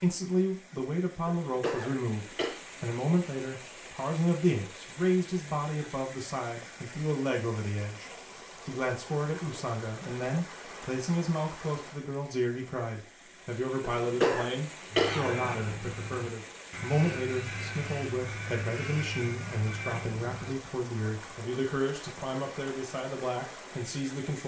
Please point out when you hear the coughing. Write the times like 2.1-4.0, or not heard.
1.2-2.6, 13.8-15.7.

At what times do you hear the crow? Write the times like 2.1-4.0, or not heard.
14.8-20.6.